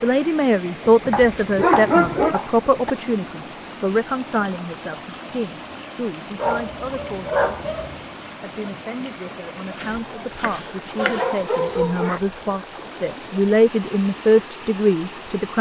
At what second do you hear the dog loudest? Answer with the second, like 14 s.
2 s.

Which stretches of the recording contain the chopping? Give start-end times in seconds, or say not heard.
1.1-3.0, 9.8-11.2.